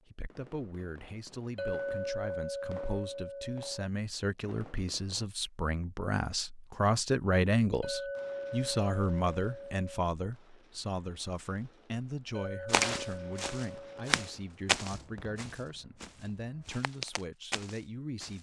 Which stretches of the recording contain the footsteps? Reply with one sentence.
You can hear the footsteps from 12.7 to 18.3 s.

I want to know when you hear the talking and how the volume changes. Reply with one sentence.
You can hear the talking from 0.1 to 18.3 s, getting louder then quieter.